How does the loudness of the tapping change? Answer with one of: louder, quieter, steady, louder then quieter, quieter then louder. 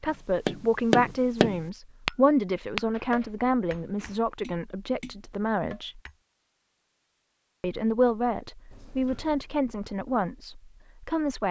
quieter.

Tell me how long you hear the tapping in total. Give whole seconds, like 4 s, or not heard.
6 s.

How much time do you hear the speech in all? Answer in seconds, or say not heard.
10 s.